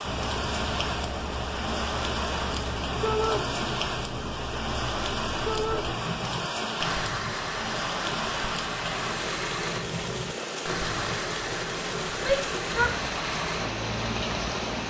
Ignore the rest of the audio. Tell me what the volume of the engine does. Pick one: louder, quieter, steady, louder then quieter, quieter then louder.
steady.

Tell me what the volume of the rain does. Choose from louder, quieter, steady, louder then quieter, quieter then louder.
steady.